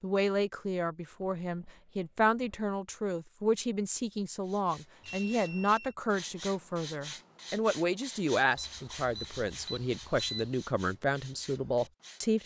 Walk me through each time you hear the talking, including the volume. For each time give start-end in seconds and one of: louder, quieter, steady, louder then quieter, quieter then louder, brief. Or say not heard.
0.0-12.4 steady.